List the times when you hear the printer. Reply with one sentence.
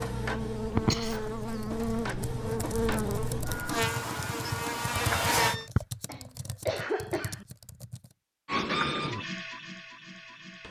You can hear the printer from 0.0 to 5.7 s and from 8.4 to 10.6 s.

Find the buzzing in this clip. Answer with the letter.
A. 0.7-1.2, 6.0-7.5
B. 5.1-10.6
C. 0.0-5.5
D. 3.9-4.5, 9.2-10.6
C.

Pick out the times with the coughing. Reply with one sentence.
You can hear the coughing from 0.7 to 1.2 s and from 6.0 to 7.5 s.